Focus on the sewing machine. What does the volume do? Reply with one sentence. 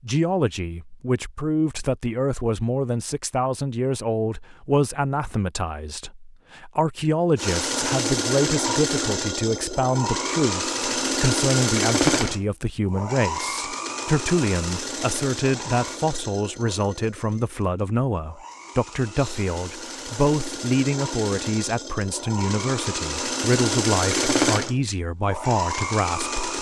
The volume of the sewing machine goes down, then up.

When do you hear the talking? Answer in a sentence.
The talking can be heard from 0.0 to 26.3 s.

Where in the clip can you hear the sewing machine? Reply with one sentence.
You can hear the sewing machine from 7.3 to 26.5 s.